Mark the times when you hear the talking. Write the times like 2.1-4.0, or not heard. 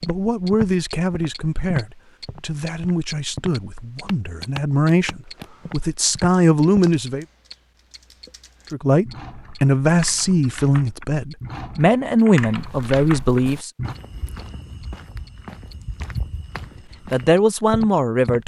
0.1-7.2, 8.7-13.7, 17.1-18.4.